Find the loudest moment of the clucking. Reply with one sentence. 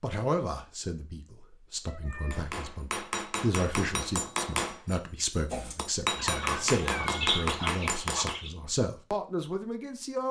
The loudest moment of the clucking is at 7 seconds.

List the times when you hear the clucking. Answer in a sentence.
The clucking can be heard from 5.5 to 8.5 s.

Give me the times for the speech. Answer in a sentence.
The speech can be heard from 0.0 to 10.2 s.